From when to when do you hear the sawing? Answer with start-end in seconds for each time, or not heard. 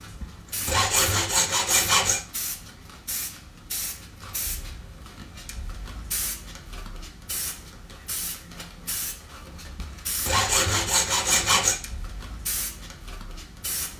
0.2-2.2, 9.8-11.8.